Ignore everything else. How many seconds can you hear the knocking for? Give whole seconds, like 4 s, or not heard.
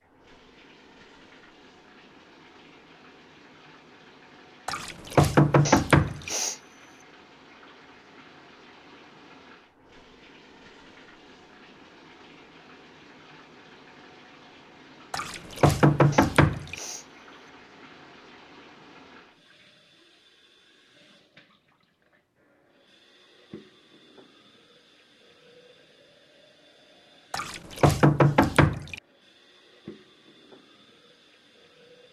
5 s.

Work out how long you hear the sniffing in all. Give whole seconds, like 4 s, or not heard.
2 s.